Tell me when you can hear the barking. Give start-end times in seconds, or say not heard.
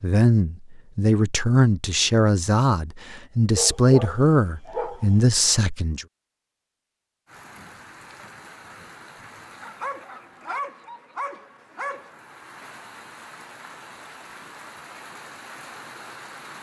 3.5-5.0, 9.6-12.1.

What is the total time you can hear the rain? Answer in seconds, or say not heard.
9 s.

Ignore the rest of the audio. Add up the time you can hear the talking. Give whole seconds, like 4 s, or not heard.
6 s.